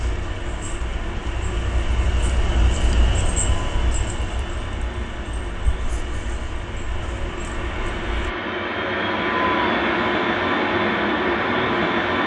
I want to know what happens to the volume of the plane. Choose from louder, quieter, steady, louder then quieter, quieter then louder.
louder.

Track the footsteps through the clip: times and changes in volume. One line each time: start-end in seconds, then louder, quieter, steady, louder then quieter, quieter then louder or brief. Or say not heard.
not heard.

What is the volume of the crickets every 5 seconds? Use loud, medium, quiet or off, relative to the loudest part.
loud, medium, off.